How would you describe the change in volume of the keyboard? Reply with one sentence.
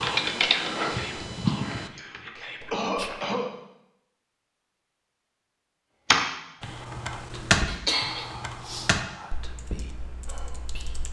The volume of the keyboard goes down.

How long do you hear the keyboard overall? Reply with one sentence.
You can hear the keyboard for 8 seconds altogether.